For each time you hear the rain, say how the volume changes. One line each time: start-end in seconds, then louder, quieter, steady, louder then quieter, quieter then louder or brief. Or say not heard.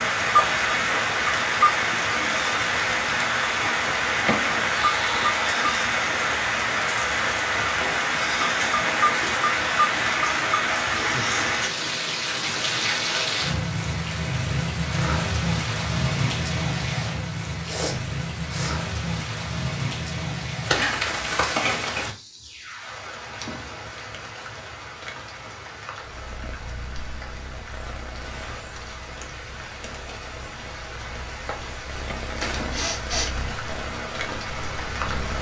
0.0-35.3 quieter.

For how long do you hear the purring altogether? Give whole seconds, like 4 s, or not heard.
9 s.